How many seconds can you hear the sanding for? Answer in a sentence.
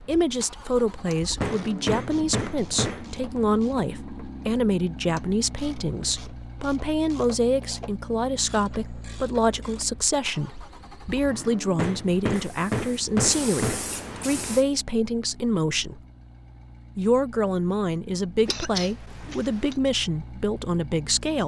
The sanding can't be heard in this clip.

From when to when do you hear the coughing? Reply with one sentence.
You can hear the coughing from 18.4 to 19.8 s.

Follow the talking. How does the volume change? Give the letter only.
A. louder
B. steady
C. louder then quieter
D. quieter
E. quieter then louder
B.